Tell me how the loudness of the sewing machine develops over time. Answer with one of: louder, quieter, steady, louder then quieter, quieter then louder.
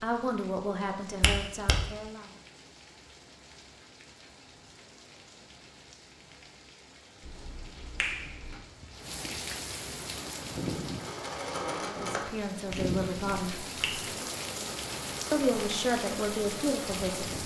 quieter.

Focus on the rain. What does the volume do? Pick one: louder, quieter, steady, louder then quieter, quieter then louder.
louder.